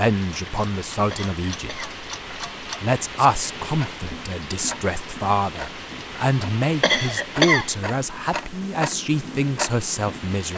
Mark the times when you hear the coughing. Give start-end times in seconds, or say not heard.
1.1-2.0, 6.8-7.7.